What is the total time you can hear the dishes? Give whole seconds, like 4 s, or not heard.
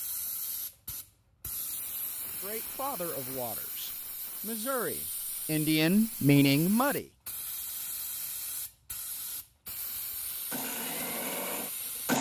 not heard.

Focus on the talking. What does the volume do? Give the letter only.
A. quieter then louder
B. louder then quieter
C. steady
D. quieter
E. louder
A.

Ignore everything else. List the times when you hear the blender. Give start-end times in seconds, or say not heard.
10.5-12.1.